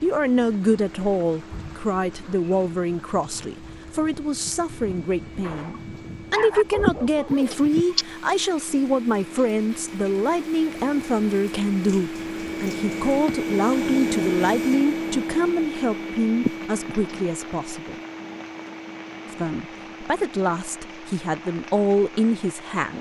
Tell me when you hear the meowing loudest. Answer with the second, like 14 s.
7 s.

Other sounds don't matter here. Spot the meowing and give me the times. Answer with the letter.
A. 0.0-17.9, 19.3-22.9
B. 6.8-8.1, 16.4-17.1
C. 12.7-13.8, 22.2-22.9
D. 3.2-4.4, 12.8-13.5
B.